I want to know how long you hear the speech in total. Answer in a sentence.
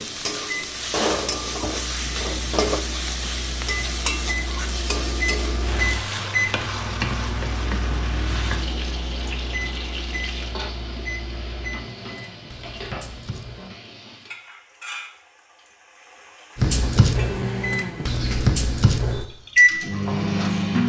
You can't hear the speech here.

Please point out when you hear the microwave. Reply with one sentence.
The microwave can be heard from 0.0 to 13.8 s and from 16.6 to 20.8 s.